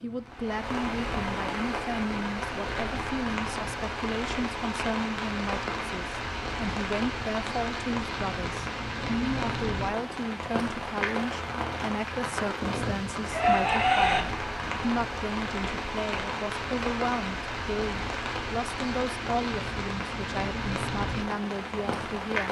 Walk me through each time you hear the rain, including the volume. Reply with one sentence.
The rain can be heard from 0.0 to 22.4 s, at a steady volume.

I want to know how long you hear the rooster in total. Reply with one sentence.
You can hear the rooster for 2 seconds altogether.